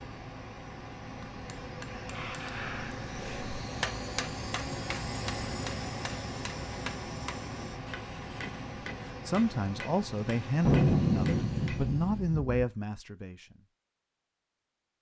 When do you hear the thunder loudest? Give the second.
11 s.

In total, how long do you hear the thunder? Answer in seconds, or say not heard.
2 s.